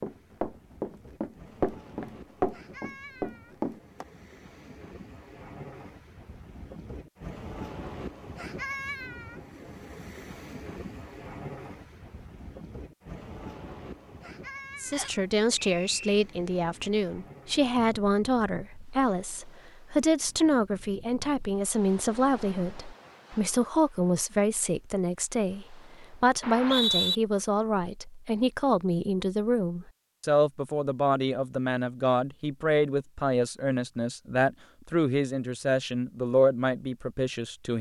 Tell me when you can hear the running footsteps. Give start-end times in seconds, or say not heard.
0.0-4.0.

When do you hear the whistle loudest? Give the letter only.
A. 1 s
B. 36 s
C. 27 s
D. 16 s
C.